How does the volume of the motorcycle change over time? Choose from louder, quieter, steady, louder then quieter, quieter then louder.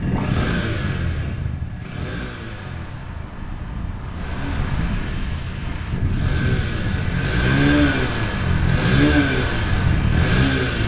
quieter then louder.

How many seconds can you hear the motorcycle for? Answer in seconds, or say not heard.
11 s.